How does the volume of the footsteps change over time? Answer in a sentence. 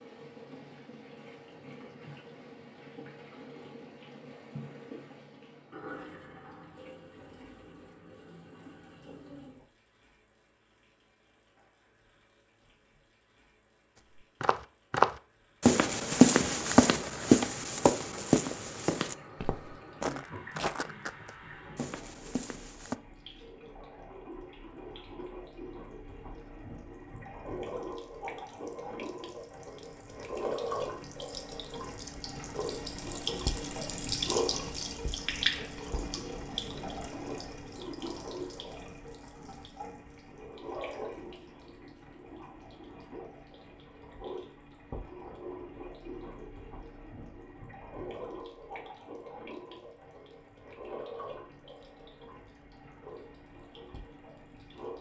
The loudness of the footsteps goes down.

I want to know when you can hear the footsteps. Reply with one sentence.
You can hear the footsteps from 14.4 to 22.9 s.